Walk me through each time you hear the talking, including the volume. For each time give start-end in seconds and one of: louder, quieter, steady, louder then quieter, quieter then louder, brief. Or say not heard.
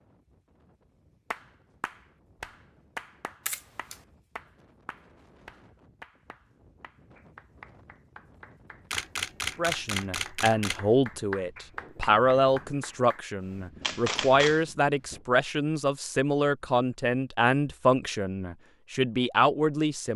9.6-20.1 steady.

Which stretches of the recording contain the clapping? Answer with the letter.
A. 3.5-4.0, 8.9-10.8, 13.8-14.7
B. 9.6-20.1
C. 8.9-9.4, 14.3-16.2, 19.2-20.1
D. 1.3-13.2
D.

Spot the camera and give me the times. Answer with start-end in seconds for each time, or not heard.
3.5-4.0, 8.9-10.8, 13.8-14.7.